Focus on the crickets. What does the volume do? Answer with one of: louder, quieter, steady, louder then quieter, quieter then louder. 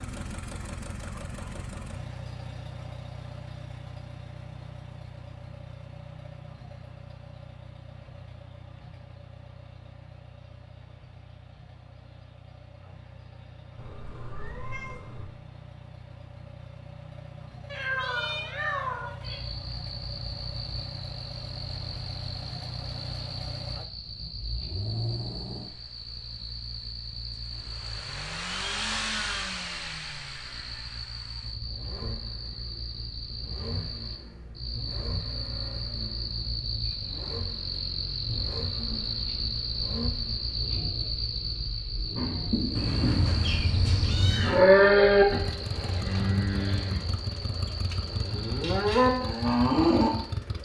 louder then quieter.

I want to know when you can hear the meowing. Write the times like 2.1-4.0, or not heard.
13.8-15.3, 17.7-19.4, 42.8-44.7.